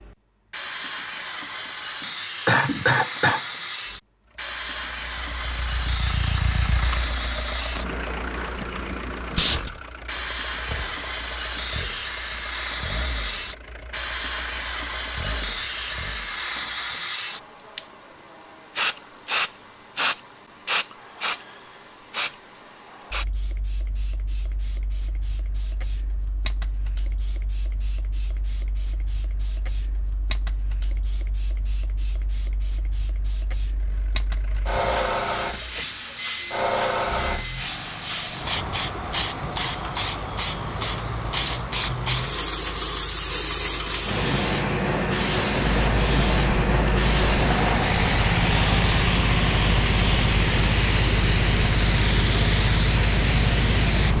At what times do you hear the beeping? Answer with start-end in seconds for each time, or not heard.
not heard.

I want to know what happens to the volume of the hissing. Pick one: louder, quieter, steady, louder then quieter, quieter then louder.
quieter then louder.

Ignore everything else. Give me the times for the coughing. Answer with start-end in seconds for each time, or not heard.
2.5-3.5.